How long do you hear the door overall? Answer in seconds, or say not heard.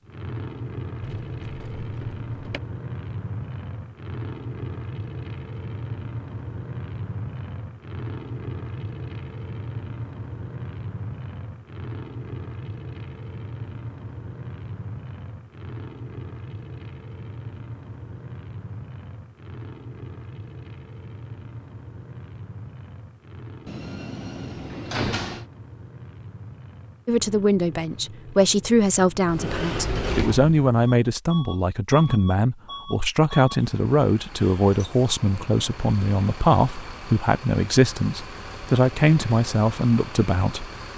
5 s.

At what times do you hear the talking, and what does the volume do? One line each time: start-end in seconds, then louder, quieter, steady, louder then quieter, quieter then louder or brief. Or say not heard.
27.1-40.7 steady.